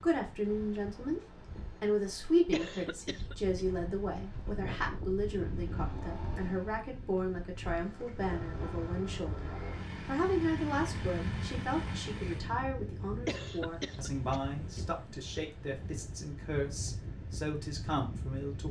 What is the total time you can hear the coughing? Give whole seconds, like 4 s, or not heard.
3 s.